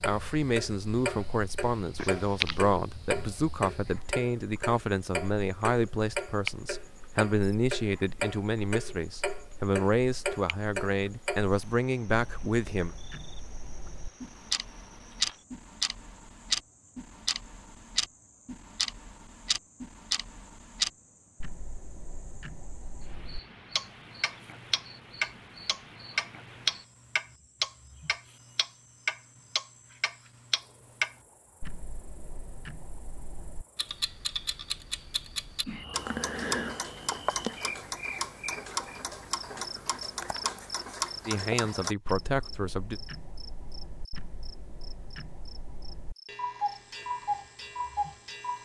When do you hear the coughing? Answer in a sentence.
The coughing can be heard from 1.9 to 2.8 s.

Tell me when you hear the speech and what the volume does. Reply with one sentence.
You can hear the speech from 0.0 to 12.9 s, at a steady volume; and briefly from 41.2 to 43.0 s.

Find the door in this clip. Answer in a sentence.
The door can't be heard in this clip.